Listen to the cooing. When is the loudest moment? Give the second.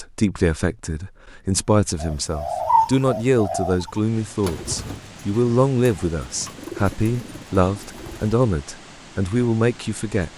3 s.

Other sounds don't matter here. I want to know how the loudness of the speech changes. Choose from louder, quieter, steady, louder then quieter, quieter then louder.
steady.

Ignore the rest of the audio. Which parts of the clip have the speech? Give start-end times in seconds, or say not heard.
0.0-10.3.